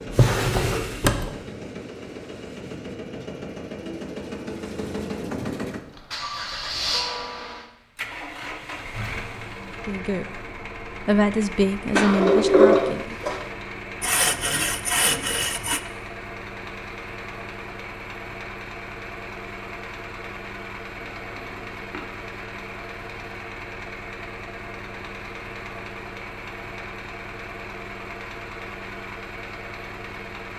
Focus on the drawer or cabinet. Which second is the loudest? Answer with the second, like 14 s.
13 s.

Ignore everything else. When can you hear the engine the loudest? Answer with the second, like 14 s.
7 s.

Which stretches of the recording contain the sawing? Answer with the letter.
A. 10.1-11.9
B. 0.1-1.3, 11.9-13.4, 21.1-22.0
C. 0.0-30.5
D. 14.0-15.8
D.